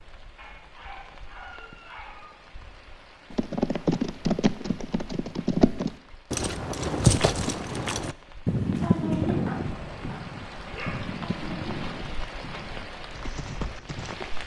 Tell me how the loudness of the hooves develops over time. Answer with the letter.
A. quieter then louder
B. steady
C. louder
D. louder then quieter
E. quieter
E.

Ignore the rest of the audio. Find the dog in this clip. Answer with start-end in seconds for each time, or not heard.
0.3-2.4, 9.1-11.1.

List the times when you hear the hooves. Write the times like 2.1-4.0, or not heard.
3.3-14.2.